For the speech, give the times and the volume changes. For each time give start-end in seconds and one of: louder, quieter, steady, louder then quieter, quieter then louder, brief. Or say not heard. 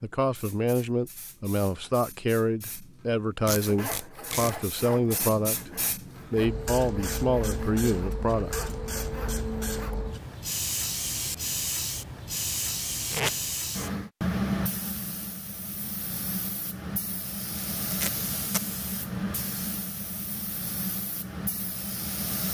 0.0-8.7 steady.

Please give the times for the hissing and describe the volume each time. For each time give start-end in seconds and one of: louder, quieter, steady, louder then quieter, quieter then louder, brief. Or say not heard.
0.2-22.4 louder.